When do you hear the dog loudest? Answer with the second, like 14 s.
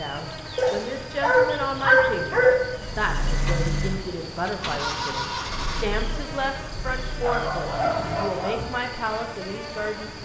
2 s.